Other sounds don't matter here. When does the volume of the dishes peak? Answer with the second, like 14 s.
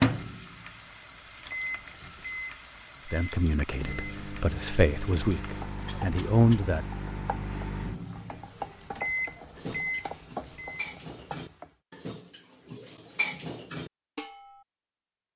13 s.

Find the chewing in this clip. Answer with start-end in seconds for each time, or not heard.
not heard.